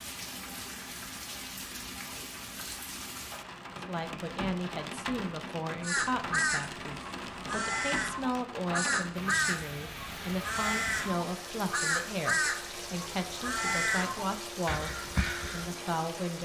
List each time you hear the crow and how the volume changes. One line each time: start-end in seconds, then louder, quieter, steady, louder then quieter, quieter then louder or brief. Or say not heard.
5.8-15.7 steady.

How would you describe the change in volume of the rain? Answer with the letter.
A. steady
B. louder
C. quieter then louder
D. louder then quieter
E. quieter
A.